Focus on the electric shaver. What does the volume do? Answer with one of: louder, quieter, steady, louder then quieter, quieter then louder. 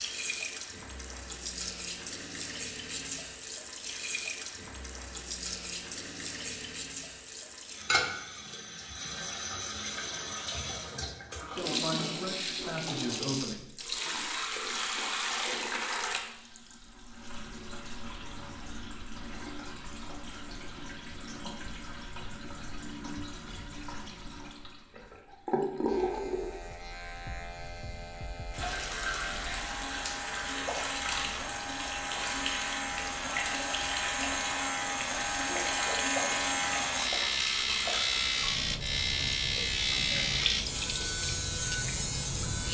louder.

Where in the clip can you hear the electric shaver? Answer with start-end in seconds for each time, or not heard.
25.9-42.6.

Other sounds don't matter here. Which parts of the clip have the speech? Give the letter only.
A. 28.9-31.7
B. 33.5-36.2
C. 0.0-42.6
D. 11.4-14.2
D.